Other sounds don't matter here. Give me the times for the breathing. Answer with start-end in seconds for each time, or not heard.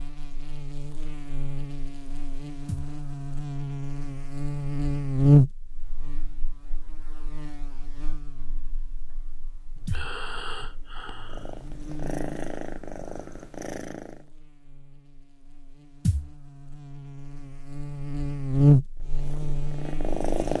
9.8-11.8.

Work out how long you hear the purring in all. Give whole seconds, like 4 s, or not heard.
5 s.